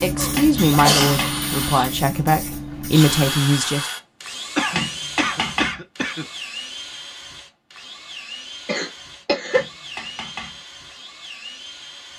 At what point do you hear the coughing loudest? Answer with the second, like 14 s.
1 s.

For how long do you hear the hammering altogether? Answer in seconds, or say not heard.
3 s.